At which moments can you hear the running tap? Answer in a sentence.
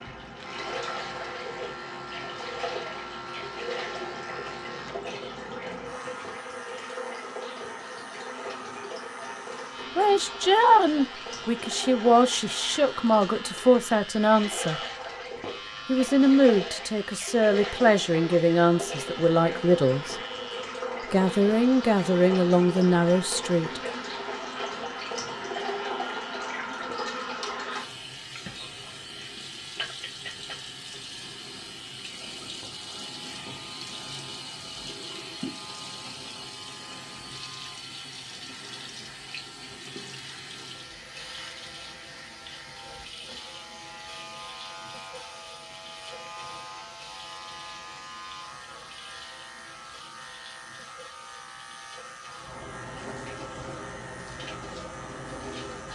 The running tap can be heard from 0.0 to 55.9 s.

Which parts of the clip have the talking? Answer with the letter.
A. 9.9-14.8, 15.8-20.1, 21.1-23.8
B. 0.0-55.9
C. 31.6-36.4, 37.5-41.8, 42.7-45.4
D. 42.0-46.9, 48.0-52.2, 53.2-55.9
A.